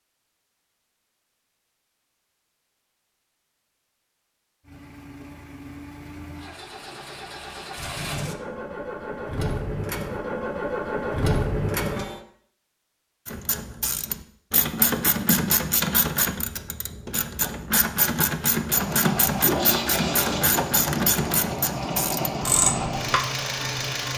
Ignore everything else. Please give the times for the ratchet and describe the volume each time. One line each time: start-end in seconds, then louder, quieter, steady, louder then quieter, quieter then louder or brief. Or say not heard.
13.2-23.2 steady.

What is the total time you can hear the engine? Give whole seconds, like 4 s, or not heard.
13 s.